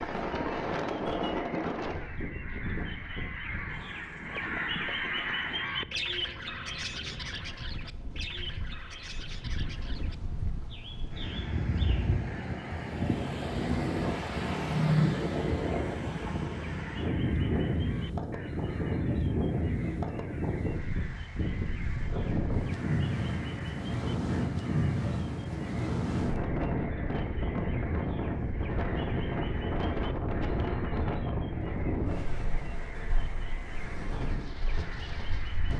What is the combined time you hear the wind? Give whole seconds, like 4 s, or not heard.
36 s.